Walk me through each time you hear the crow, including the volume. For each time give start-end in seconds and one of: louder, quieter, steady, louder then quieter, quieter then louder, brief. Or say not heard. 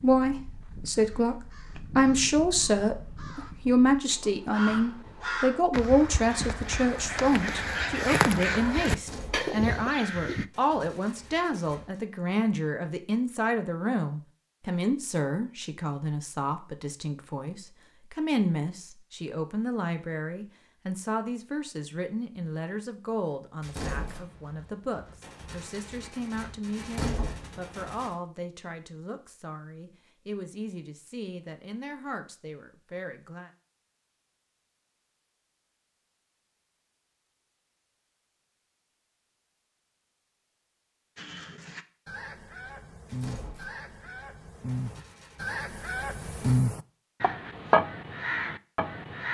0.0-10.4 louder
41.1-49.3 louder.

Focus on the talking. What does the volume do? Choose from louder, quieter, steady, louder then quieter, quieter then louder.
quieter.